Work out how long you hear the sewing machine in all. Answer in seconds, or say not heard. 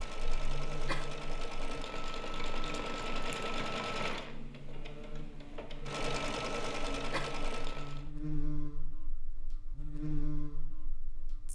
8 s.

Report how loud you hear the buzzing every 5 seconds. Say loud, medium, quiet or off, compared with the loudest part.
medium, loud, loud.